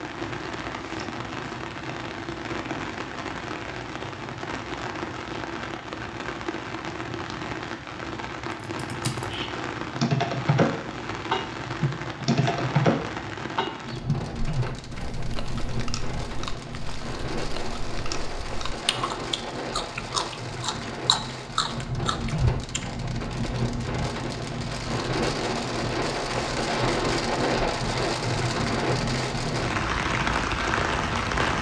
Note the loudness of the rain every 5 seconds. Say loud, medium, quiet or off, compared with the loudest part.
medium, medium, medium, medium, medium, loud, loud.